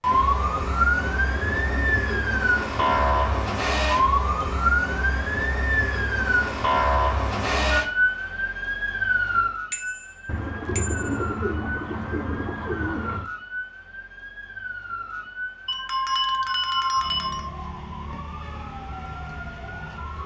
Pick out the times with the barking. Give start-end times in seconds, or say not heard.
not heard.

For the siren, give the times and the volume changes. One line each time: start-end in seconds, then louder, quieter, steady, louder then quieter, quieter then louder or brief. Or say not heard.
0.0-20.2 quieter.